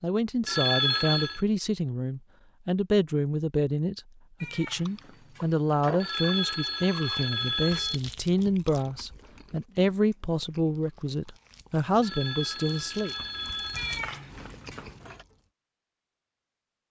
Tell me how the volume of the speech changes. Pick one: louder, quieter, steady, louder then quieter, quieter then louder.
steady.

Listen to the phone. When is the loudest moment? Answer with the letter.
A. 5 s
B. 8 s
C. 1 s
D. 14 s
C.